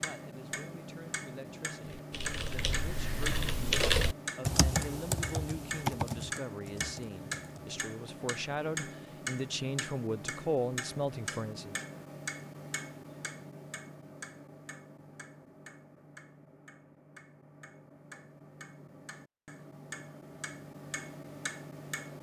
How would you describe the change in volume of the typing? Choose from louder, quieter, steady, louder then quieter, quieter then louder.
louder then quieter.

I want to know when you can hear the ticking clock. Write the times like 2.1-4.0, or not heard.
0.0-22.1.